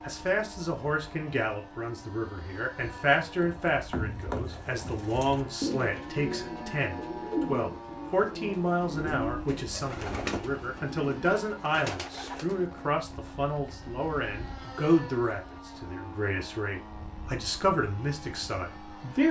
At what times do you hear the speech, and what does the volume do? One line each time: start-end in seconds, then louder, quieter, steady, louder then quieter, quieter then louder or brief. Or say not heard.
0.0-19.2 steady.